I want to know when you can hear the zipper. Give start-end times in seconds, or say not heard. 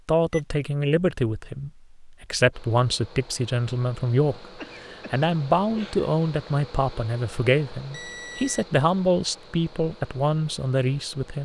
not heard.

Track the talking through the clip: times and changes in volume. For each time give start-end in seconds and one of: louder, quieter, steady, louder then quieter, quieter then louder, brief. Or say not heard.
0.1-11.3 steady.